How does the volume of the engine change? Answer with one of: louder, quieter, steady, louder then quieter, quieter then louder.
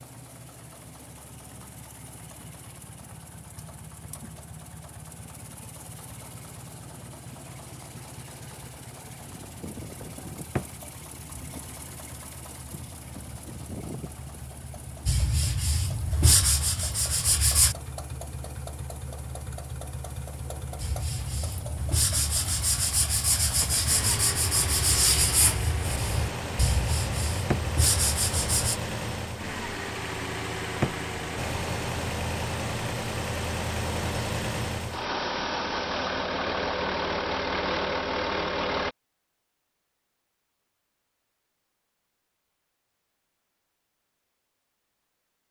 louder.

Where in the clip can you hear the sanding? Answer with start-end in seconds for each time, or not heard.
15.1-17.8, 20.8-28.8.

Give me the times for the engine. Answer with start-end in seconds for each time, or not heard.
0.0-39.0.